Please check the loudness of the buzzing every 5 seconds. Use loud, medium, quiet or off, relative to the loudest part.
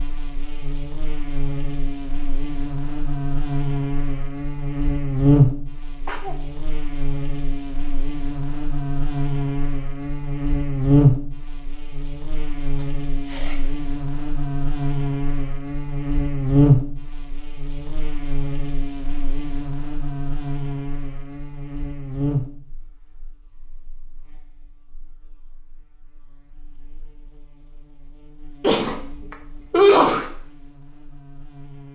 medium, loud, loud, loud, medium, quiet, quiet.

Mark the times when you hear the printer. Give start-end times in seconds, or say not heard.
not heard.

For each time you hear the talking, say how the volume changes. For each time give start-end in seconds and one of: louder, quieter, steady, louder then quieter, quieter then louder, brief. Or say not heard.
not heard.